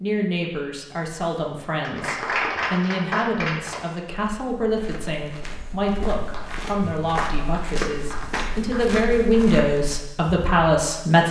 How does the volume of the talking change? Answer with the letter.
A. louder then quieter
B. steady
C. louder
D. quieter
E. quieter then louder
C.